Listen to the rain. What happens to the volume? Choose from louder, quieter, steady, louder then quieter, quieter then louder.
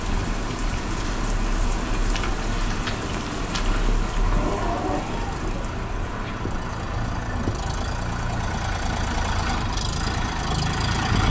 quieter.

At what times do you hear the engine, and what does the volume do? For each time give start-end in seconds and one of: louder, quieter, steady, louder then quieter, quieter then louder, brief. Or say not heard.
0.1-11.2 louder.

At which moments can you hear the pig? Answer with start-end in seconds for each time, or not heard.
4.2-5.7.